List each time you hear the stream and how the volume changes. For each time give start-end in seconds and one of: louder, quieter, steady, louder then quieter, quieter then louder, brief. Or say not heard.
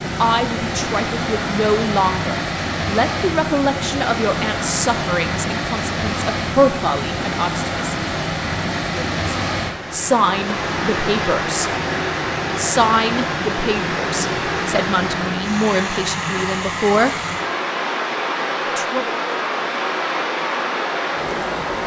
0.0-21.8 steady.